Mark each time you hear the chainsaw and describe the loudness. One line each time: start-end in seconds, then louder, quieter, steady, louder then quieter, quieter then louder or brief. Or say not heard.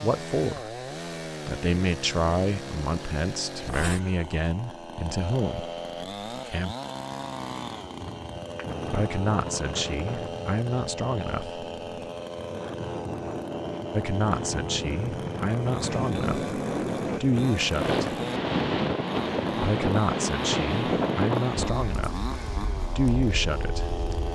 0.0-24.3 steady.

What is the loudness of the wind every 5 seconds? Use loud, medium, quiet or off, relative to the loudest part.
off, medium, medium, loud, loud.